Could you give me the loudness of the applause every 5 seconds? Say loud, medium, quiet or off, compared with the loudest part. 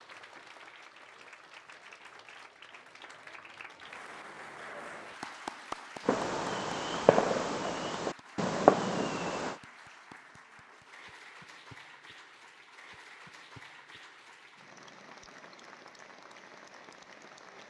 medium, loud, medium, medium.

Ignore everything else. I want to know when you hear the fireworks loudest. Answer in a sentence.
The loudest moment of the fireworks is at 9 seconds.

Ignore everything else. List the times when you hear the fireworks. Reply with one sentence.
The fireworks can be heard from 6.0 to 9.6 s.